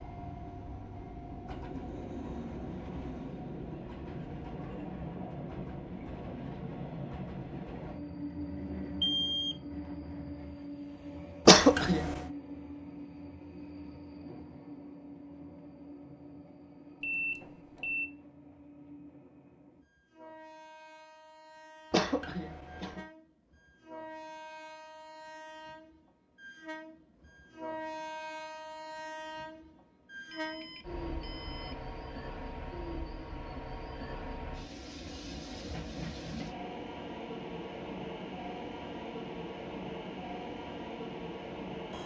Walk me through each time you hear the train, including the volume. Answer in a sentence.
The train can be heard from 0.0 to 42.0 s, getting quieter then louder.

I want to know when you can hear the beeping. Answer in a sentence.
The beeping can be heard from 9.0 to 9.6 s, from 17.0 to 18.1 s and from 30.3 to 31.8 s.